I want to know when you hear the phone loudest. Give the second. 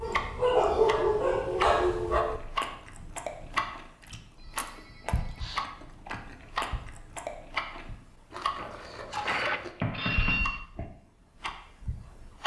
10 s.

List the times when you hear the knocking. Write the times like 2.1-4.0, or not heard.
8.9-10.4.